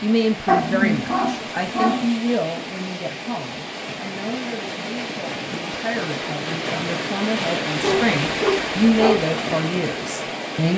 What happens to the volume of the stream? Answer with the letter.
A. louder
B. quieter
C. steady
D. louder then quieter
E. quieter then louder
A.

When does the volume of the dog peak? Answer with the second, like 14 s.
1 s.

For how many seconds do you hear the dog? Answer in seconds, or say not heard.
3 s.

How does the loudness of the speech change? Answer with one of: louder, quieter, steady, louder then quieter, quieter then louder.
quieter then louder.